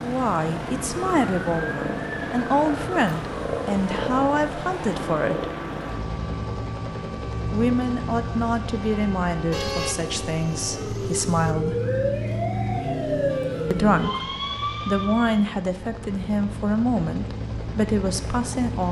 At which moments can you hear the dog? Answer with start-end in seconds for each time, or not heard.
not heard.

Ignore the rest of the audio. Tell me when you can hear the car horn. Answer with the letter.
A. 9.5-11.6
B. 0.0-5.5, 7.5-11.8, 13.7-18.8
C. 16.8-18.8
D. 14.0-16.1
A.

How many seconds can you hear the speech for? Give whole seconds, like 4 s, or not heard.
15 s.